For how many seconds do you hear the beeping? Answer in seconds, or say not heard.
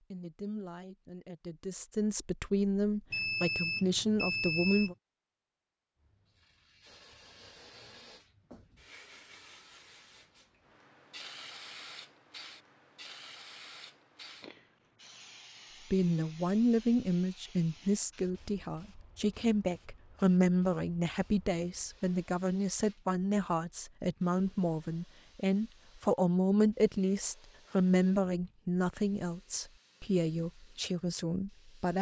2 s.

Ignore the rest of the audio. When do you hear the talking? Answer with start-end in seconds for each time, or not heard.
0.0-5.0, 15.9-31.9.